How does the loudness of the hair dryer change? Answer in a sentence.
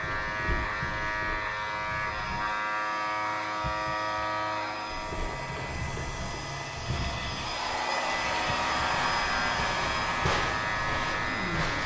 The volume of the hair dryer goes up.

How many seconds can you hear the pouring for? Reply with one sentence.
You can hear the pouring for 2 seconds altogether.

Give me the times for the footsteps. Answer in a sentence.
You can hear the footsteps from 0.0 to 2.5 s and from 4.8 to 11.8 s.